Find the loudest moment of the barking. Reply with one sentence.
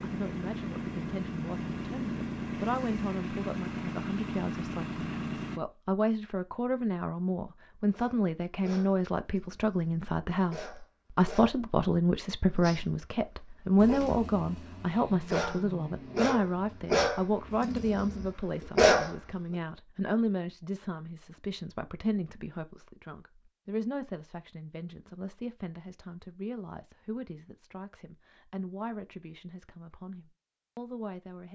The volume of the barking peaks at 19 seconds.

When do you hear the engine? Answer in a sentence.
The engine can be heard from 0.0 to 5.6 s and from 13.8 to 17.7 s.